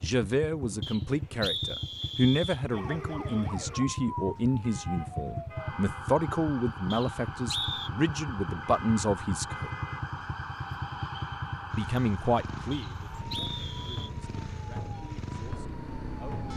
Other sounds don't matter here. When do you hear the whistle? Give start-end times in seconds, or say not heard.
0.8-2.6, 6.9-7.9, 12.7-14.1.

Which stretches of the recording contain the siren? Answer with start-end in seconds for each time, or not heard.
2.6-16.5.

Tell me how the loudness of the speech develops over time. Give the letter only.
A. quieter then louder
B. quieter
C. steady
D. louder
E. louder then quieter
B.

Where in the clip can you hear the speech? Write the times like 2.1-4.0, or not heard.
0.0-9.7, 11.8-16.4.